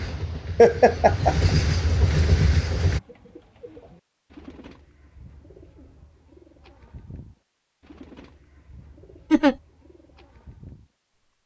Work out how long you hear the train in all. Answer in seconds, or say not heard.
3 s.